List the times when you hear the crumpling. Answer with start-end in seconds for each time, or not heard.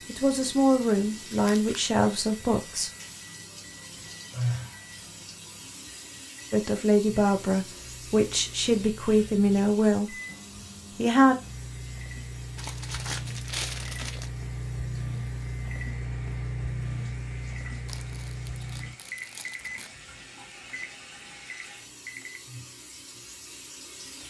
1.3-1.8, 12.6-14.3, 17.9-19.9.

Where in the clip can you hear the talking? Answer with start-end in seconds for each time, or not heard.
0.1-2.9, 6.5-10.2, 10.9-11.3.